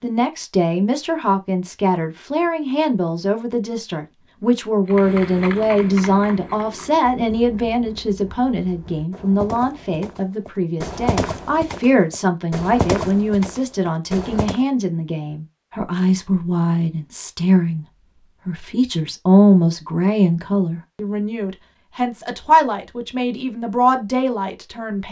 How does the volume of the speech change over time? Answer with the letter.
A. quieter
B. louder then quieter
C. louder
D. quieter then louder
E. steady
E.